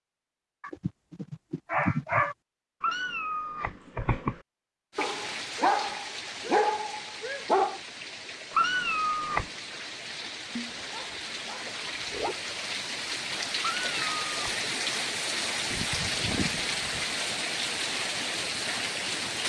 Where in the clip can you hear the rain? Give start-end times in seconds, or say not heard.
4.9-19.4.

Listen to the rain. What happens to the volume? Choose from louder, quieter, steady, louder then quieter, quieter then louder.
louder.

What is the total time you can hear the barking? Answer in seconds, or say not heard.
8 s.